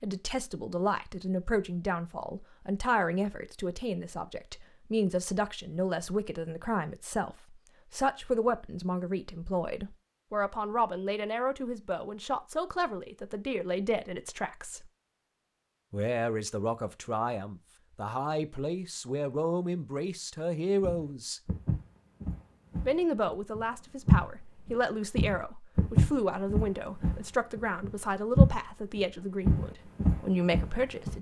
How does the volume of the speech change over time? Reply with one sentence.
The loudness of the speech stays about the same.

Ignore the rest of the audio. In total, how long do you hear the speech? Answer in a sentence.
You can hear the speech for 29 seconds altogether.